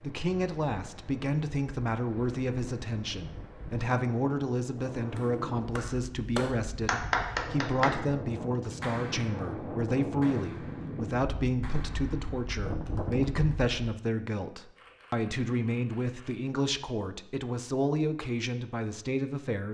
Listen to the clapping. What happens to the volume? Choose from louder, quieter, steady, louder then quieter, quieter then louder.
quieter.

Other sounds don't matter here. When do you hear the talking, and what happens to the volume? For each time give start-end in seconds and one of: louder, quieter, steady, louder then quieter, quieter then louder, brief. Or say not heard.
0.0-19.7 steady.